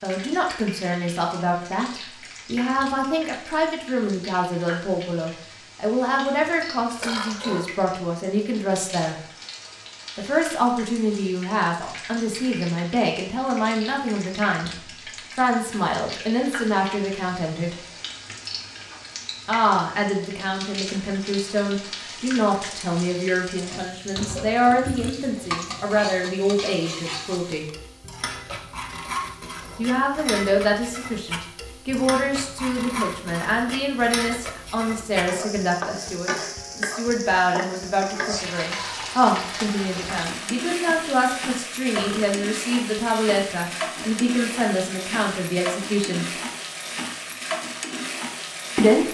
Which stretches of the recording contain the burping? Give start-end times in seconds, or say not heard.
7.0-7.8, 24.7-25.3, 42.0-42.4.